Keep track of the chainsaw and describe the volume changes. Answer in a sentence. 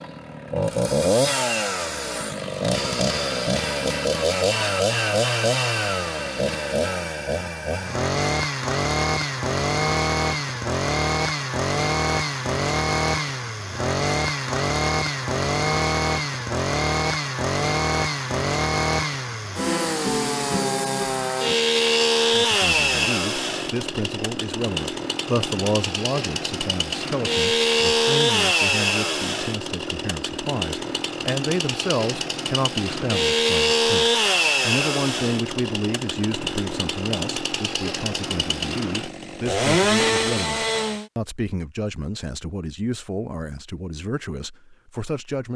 The loudness of the chainsaw stays about the same.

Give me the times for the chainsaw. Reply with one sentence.
The chainsaw can be heard from 0.0 to 41.1 s.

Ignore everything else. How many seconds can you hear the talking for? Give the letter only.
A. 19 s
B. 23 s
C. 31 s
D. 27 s
B.